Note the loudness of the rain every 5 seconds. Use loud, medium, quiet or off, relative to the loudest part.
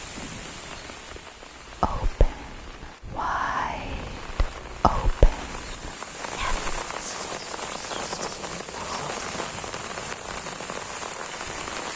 medium, loud, loud.